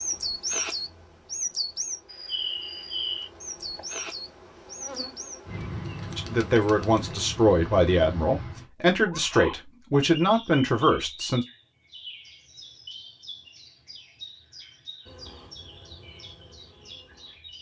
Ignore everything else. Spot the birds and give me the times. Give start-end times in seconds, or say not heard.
0.0-17.5.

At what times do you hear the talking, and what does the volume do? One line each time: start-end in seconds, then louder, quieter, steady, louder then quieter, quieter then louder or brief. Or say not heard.
6.2-11.4 steady.